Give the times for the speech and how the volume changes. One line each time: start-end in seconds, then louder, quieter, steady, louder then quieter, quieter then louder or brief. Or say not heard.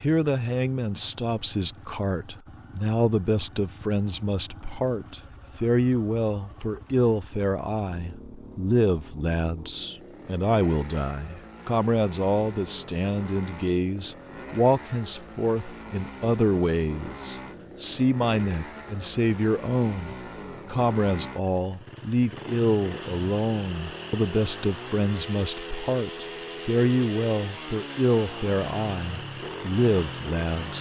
0.0-30.7 steady.